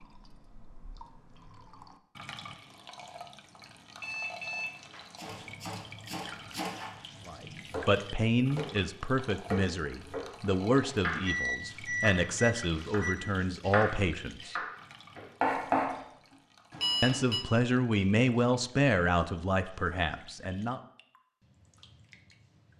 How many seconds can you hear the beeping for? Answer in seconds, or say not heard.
4 s.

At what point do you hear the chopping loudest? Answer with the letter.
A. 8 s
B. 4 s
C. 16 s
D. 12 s
C.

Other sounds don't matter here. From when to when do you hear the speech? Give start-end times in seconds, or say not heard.
7.2-14.6, 17.0-20.8.